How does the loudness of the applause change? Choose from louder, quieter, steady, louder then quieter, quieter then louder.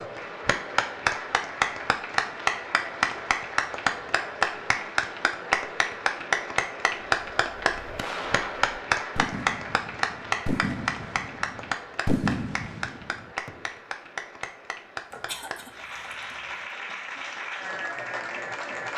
quieter.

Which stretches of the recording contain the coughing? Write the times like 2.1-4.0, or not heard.
15.1-16.6.